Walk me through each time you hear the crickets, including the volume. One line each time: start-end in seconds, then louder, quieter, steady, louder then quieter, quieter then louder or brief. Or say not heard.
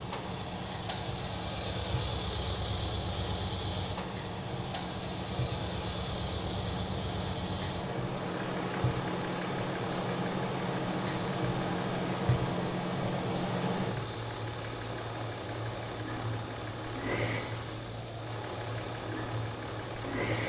0.0-20.4 louder.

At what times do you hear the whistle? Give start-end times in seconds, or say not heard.
not heard.